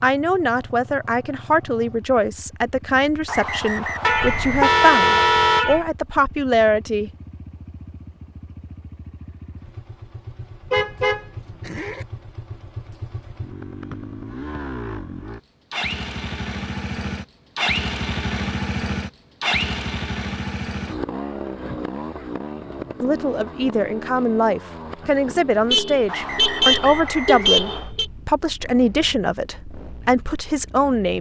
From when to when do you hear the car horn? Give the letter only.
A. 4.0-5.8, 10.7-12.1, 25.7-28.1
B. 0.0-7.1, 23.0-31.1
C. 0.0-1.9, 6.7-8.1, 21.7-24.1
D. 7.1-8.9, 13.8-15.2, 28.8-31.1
A.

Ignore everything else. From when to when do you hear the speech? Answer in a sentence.
The speech can be heard from 0.0 to 7.1 s and from 23.0 to 31.1 s.